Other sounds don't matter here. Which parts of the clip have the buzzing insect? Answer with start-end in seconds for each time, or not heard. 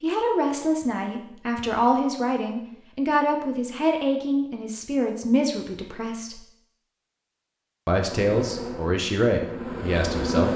8.0-10.5.